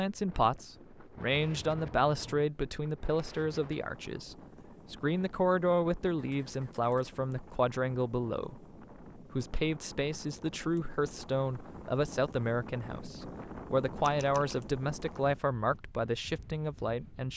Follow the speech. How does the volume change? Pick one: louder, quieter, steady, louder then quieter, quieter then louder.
steady.